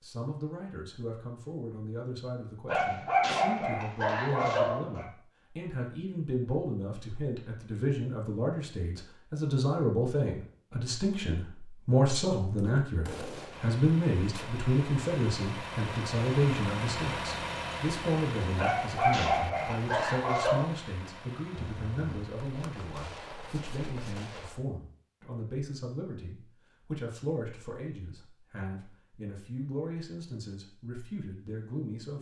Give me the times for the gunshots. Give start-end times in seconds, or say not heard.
12.6-14.5, 21.6-24.6.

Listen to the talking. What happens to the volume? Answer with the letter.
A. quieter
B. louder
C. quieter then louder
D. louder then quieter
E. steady
D.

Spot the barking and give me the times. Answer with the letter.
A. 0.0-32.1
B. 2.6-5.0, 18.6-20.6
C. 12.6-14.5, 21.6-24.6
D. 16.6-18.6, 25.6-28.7
B.